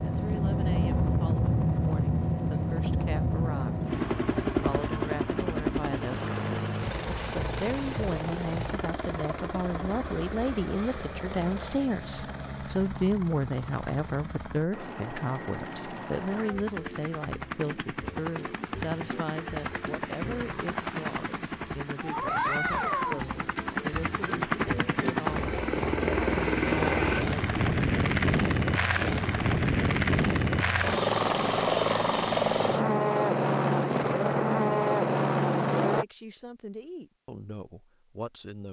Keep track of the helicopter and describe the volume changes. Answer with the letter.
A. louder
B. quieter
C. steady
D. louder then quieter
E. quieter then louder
E.